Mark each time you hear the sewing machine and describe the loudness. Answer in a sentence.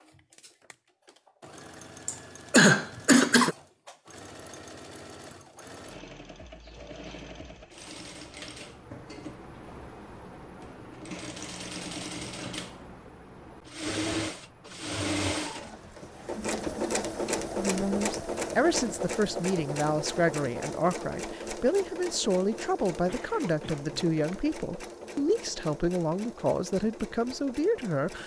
The sewing machine can be heard from 0.0 to 28.2 s, getting louder then quieter.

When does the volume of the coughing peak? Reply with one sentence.
The volume of the coughing peaks at 3 seconds.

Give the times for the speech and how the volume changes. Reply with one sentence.
The speech can be heard from 17.6 to 28.2 s, at a steady volume.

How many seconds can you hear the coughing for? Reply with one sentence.
You can hear the coughing for 3 seconds altogether.